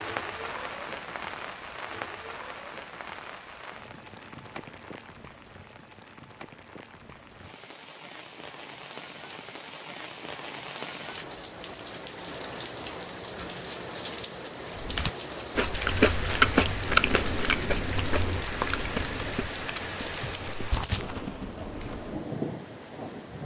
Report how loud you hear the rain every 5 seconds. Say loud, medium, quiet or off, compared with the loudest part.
loud, medium, loud, loud, loud.